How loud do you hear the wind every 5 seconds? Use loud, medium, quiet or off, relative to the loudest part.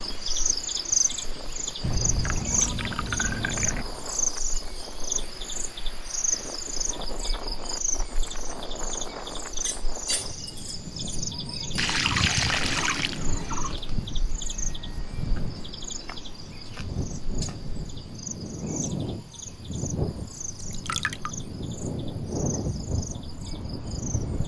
medium, medium, medium, loud, loud.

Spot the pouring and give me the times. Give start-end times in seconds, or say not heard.
1.8-3.9, 11.8-13.8, 20.6-21.3.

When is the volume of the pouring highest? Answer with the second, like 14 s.
12 s.